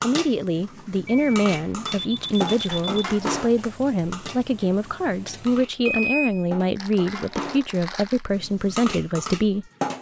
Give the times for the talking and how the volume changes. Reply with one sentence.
You can hear the talking from 0.0 to 9.7 s, at a steady volume.